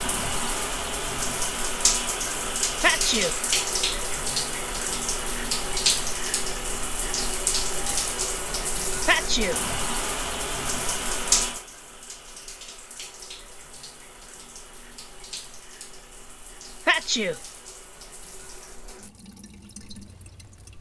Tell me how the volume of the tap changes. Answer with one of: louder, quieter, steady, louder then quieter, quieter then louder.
quieter.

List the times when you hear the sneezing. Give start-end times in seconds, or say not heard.
2.8-3.4, 9.1-9.6, 16.9-17.4.